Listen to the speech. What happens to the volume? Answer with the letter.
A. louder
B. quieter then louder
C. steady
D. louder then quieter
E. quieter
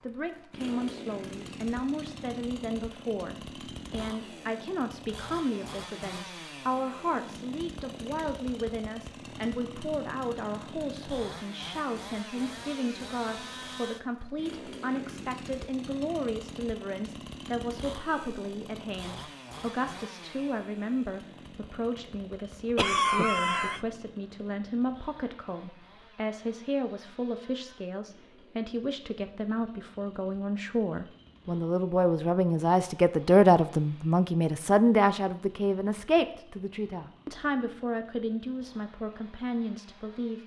A.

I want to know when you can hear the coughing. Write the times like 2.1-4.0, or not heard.
22.8-23.8.